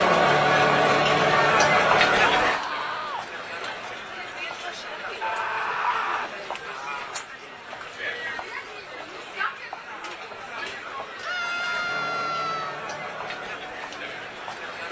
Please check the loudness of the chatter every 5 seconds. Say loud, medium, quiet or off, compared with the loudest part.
loud, quiet, quiet.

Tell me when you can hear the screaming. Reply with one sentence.
You can hear the screaming from 2.4 to 3.2 s, from 5.2 to 6.3 s and from 11.2 to 12.8 s.